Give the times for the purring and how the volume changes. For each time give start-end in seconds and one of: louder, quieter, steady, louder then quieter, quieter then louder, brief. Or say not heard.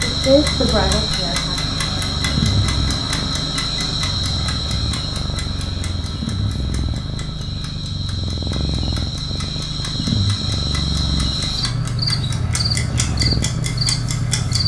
0.0-14.6 steady.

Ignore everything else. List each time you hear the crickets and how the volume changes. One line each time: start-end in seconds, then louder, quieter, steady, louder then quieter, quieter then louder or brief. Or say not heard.
0.0-14.6 quieter then louder.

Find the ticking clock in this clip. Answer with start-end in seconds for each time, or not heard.
0.0-14.6.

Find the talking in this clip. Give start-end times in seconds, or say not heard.
0.0-1.6.